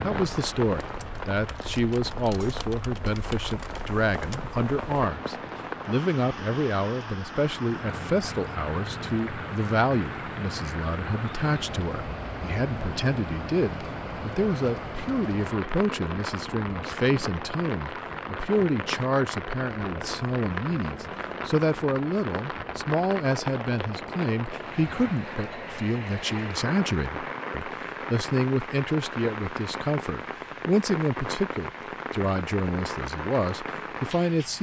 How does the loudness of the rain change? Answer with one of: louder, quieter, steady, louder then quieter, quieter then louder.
steady.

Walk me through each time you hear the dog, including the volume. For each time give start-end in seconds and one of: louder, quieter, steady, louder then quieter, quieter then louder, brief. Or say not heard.
not heard.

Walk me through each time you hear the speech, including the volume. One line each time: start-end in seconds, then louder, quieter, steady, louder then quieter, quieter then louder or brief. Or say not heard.
0.0-34.5 steady.